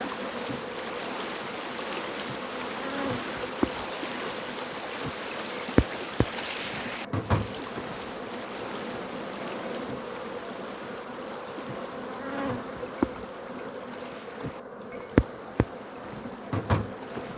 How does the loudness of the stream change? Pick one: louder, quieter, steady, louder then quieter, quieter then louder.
quieter.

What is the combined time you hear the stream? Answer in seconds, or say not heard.
17 s.